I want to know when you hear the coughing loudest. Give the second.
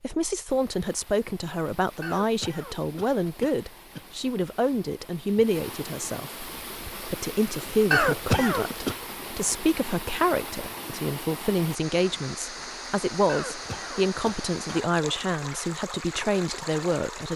8 s.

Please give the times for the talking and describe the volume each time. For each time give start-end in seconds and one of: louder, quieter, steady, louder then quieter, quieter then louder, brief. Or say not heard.
0.0-17.3 steady.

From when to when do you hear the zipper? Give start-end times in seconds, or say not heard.
not heard.